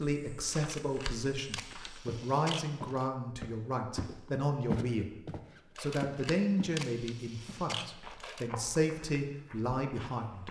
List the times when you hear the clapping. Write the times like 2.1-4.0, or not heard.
not heard.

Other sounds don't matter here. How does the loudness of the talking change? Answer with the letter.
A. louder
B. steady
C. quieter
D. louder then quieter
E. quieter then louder
B.